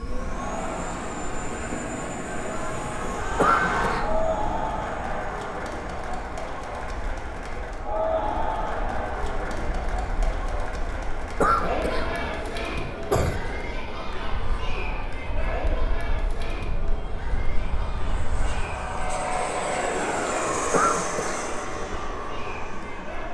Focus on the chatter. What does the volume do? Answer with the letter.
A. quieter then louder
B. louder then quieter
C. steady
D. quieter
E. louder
D.